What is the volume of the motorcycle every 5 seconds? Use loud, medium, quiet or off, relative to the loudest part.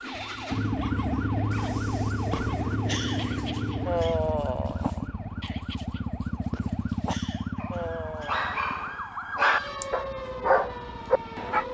loud, medium, quiet.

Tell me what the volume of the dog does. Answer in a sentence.
The volume of the dog goes up.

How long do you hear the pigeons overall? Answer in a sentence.
The pigeons can't be heard in this clip.